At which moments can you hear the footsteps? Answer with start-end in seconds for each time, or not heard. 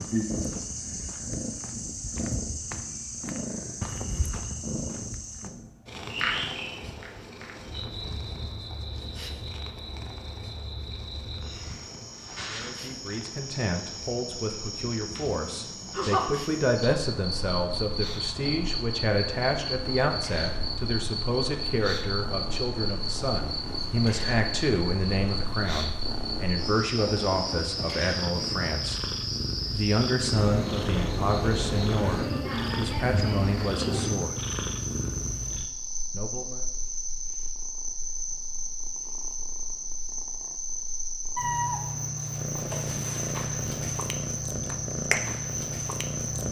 0.0-5.5.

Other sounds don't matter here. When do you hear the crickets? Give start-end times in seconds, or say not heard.
0.0-46.4.